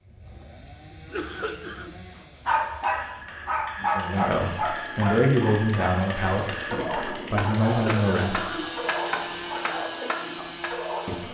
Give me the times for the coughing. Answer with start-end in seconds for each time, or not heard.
0.9-1.9, 7.8-8.7.